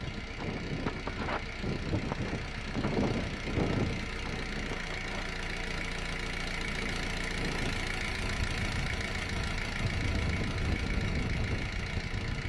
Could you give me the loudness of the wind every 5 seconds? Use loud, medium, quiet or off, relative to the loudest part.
loud, medium, loud.